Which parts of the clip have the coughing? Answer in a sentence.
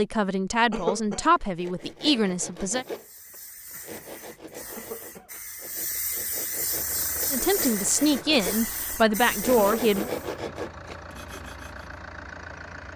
The coughing can be heard from 0.7 to 1.2 s, from 4.8 to 5.3 s and from 9.6 to 10.0 s.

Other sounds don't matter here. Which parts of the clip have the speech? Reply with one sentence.
The speech can be heard from 0.0 to 2.9 s and from 7.3 to 10.1 s.